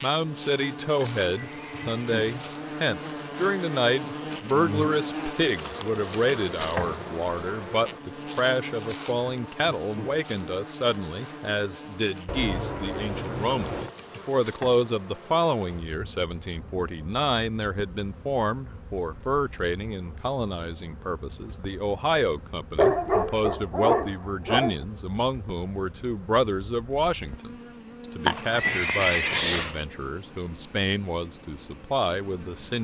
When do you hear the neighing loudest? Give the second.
29 s.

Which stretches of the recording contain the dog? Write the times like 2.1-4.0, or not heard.
22.8-24.8.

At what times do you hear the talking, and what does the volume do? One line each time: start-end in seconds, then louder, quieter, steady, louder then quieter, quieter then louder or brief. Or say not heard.
0.0-32.7 steady.